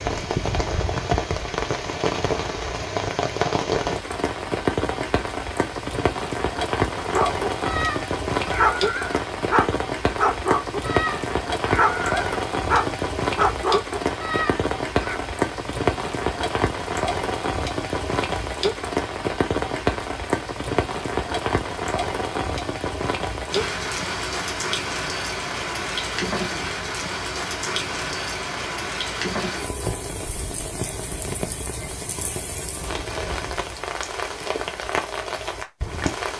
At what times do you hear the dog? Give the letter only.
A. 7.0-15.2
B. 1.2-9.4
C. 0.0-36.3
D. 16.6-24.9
A.